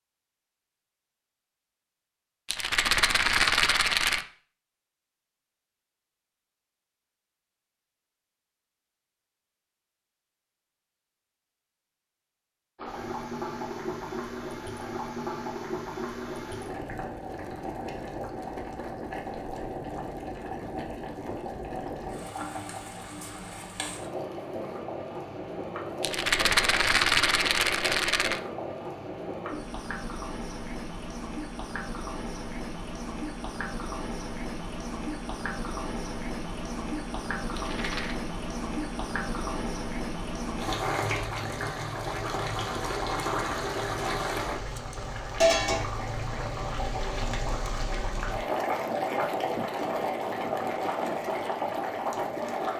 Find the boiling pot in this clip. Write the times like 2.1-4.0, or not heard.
12.8-52.7.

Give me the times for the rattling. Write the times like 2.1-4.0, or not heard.
2.5-4.2, 26.0-28.4, 37.5-38.1.